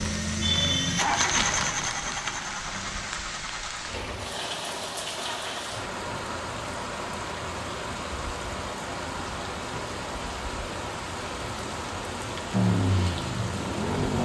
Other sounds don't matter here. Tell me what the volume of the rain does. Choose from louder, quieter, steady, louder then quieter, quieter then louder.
steady.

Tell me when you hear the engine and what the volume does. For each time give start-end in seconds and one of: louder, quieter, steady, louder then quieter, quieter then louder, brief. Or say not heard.
0.0-5.8 quieter
12.5-14.2 brief.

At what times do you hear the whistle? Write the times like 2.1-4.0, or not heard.
not heard.